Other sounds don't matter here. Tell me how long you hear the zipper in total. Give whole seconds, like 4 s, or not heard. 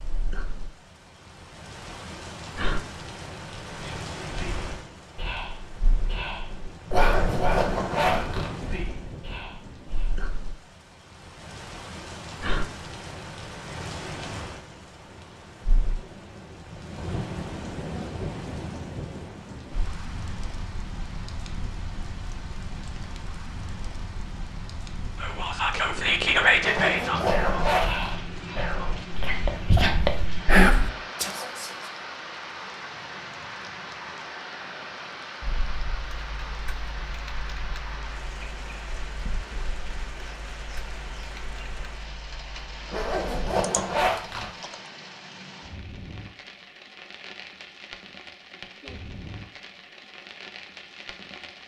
5 s.